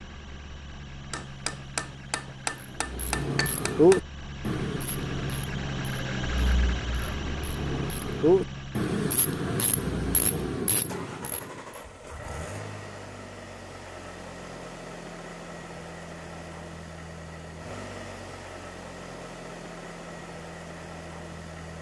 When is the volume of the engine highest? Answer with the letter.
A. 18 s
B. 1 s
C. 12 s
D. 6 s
D.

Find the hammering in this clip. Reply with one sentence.
The hammering can be heard from 1.1 to 4.0 s.